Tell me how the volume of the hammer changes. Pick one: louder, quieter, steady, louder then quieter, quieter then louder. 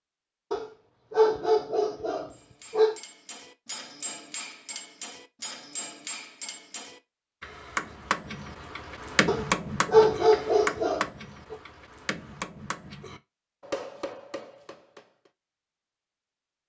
louder then quieter.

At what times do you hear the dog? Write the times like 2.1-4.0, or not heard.
0.5-3.0, 9.2-11.6.